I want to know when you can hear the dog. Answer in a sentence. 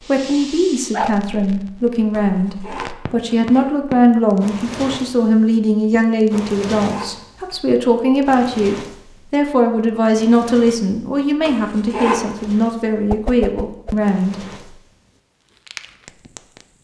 You can't hear the dog here.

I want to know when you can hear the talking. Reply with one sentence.
You can hear the talking from 0.1 to 14.3 s.